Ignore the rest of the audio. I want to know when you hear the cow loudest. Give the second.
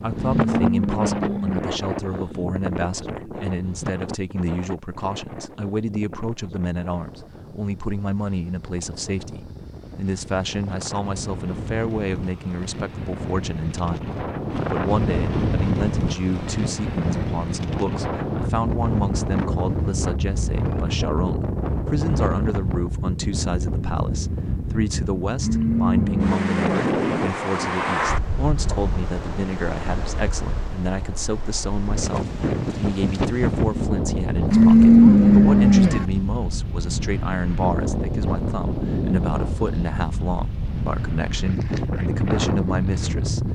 35 s.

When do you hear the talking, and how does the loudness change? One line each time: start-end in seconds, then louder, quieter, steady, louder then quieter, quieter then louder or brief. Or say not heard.
0.0-43.5 steady.